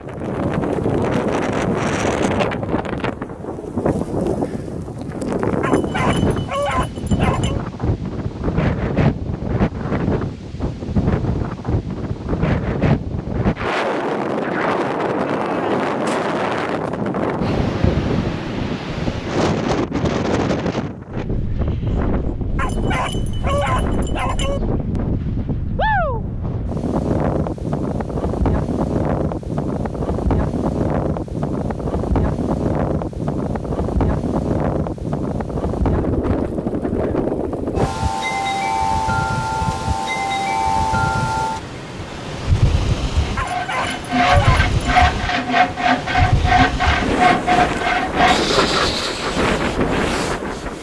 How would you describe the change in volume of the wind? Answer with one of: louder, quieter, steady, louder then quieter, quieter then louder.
steady.